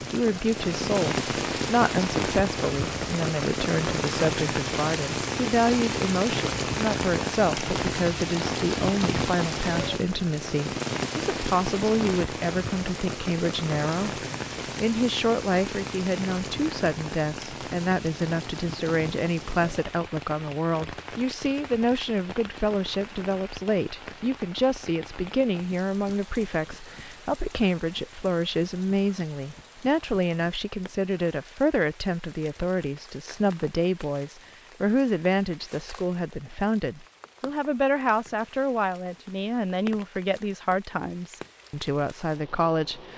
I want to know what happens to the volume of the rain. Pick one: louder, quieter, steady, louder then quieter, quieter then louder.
quieter.